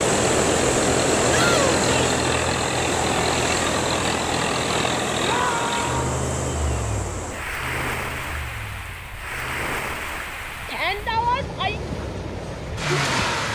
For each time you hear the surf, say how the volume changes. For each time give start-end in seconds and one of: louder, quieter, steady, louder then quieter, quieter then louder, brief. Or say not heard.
0.0-13.4 quieter.